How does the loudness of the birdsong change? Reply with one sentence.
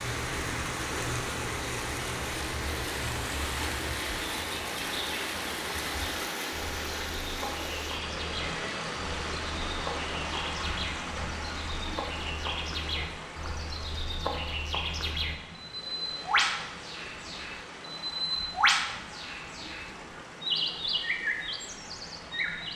The volume of the birdsong goes up.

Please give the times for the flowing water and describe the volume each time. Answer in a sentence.
The flowing water can be heard from 0.0 to 22.7 s, getting quieter.